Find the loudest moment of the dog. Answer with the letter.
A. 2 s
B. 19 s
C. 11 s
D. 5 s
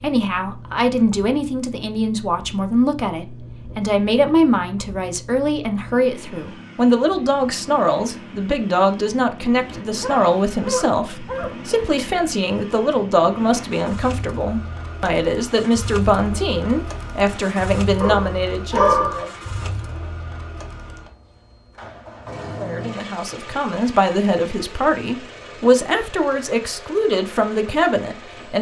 B.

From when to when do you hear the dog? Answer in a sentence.
The dog can be heard from 10.0 to 11.7 s and from 18.0 to 19.2 s.